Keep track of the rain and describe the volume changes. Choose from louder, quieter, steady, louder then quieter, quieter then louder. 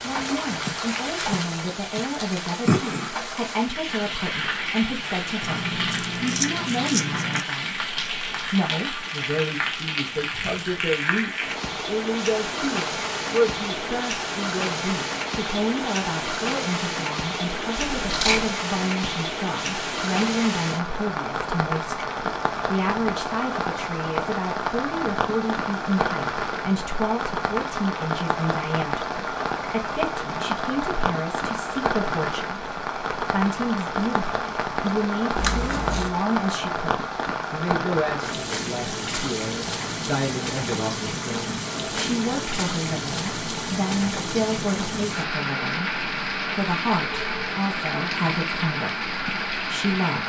steady.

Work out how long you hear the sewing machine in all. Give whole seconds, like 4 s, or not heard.
not heard.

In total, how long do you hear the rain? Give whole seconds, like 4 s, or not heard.
50 s.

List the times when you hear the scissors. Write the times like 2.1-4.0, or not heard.
5.4-7.5, 17.8-18.5, 35.4-36.1.